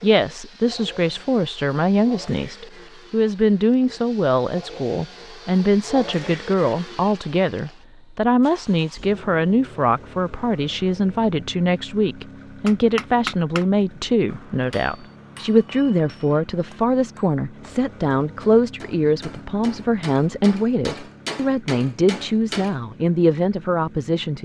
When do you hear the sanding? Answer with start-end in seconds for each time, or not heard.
not heard.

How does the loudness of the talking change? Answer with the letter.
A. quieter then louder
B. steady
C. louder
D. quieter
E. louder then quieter
B.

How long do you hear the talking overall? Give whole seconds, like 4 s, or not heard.
24 s.